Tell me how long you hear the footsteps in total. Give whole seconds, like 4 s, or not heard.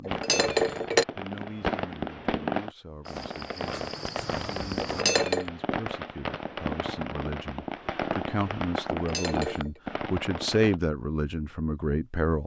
2 s.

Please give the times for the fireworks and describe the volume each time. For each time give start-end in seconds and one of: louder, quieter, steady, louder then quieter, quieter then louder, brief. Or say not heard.
0.1-10.8 steady.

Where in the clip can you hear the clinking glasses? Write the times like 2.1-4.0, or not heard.
0.1-1.1, 4.8-5.5, 8.9-9.8.